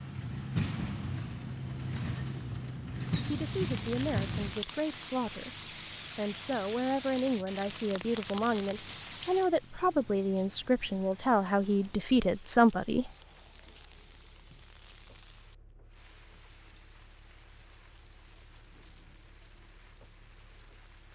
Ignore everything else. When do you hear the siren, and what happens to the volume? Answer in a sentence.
The siren can't be heard in this clip.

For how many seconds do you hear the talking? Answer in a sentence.
You can hear the talking for 9 seconds altogether.